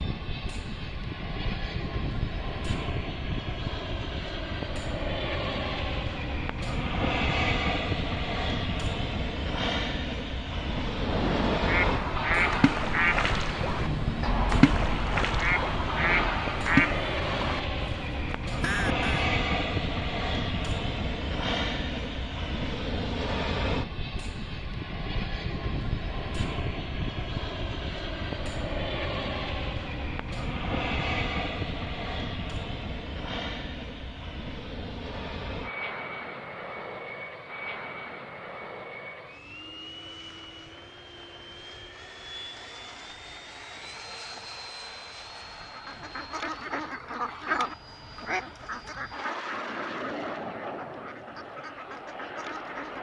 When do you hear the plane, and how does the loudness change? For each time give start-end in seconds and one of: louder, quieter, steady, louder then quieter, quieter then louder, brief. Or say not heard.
0.0-52.9 quieter.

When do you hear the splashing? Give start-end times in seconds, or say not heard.
10.9-17.0.